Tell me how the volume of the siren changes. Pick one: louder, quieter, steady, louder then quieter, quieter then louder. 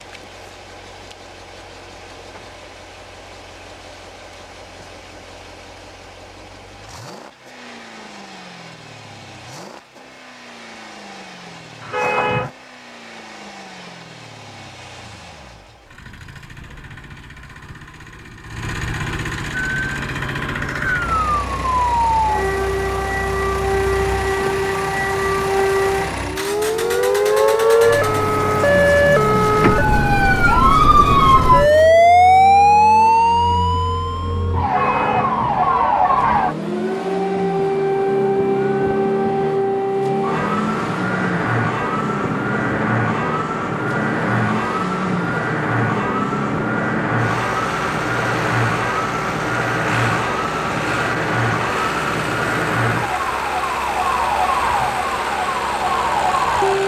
louder then quieter.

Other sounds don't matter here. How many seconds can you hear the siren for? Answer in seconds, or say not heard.
37 s.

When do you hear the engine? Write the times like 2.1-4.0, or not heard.
0.0-56.8.